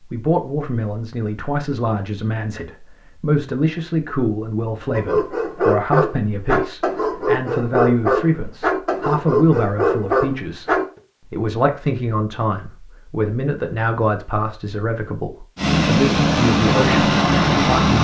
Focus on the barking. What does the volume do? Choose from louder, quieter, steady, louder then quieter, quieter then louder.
steady.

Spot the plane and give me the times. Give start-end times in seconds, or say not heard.
15.6-17.9.